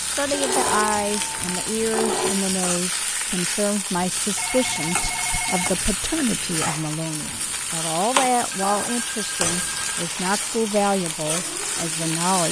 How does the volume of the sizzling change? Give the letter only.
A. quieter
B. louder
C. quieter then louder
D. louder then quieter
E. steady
E.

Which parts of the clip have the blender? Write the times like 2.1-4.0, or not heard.
not heard.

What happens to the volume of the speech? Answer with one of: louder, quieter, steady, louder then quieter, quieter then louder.
steady.